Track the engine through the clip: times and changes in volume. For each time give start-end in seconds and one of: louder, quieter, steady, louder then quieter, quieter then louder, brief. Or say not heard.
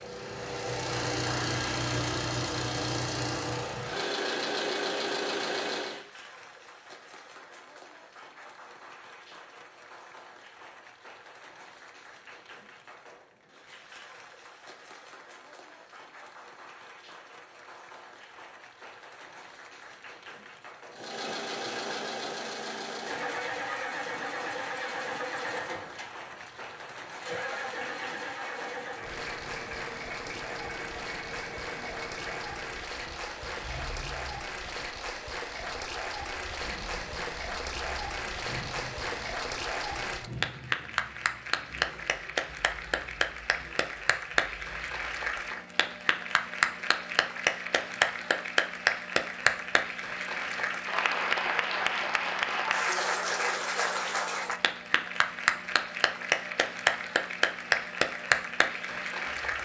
0.0-6.0 steady
20.9-59.6 quieter.